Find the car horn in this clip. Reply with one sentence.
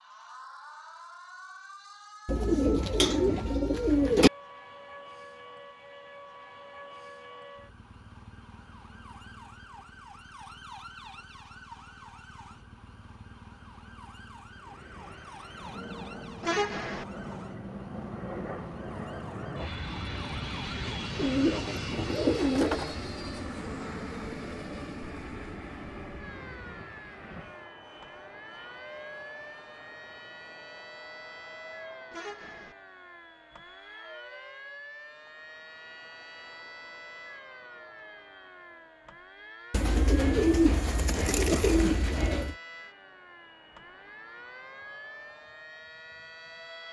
You can hear the car horn from 16.4 to 17.1 s and from 32.1 to 32.8 s.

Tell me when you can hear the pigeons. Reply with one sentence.
You can hear the pigeons from 2.2 to 4.3 s, from 21.1 to 22.9 s and from 39.7 to 42.5 s.